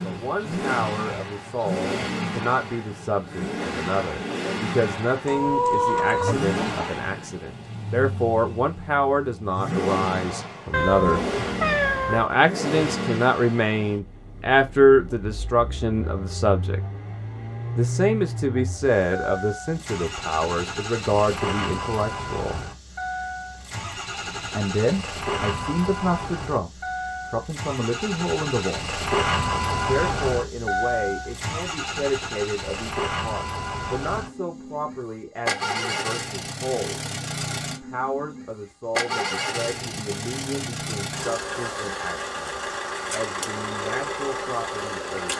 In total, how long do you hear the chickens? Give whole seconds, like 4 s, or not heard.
2 s.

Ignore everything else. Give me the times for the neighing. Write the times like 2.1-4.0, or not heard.
not heard.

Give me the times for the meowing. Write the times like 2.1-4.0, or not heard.
10.7-12.3.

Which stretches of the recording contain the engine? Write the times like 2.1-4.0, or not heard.
0.0-45.3.